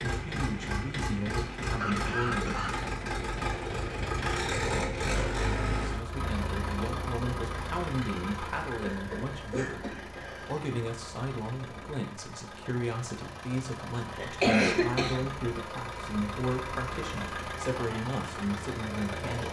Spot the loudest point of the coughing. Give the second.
15 s.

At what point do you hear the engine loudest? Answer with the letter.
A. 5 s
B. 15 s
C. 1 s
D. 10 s
A.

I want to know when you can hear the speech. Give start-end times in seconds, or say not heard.
0.1-2.6, 5.8-19.4.